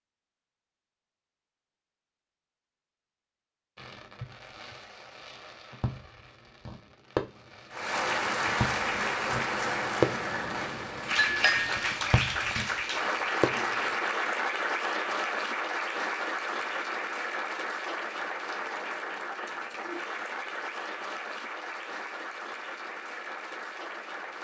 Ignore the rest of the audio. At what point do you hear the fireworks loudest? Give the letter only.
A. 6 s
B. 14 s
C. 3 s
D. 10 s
D.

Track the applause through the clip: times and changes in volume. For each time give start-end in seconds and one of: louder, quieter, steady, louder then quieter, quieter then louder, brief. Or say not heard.
7.7-24.4 quieter.